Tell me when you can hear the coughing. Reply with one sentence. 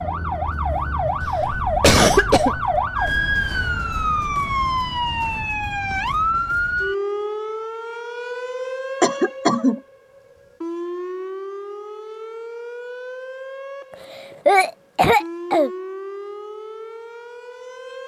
The coughing can be heard from 1.2 to 2.8 s, from 9.0 to 9.8 s and from 13.9 to 15.7 s.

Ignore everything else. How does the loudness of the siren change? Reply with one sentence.
The volume of the siren goes down.